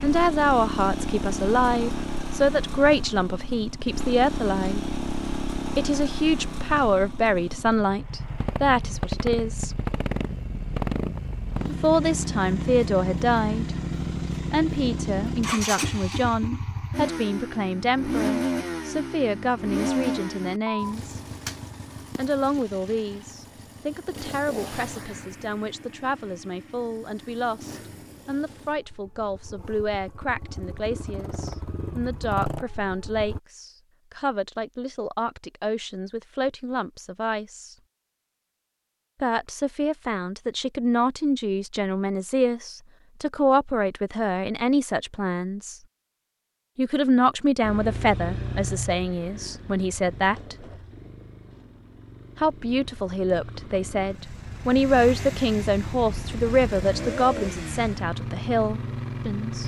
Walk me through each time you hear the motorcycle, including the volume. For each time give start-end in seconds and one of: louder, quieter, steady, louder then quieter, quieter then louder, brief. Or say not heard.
0.0-33.4 quieter
47.6-59.6 quieter then louder.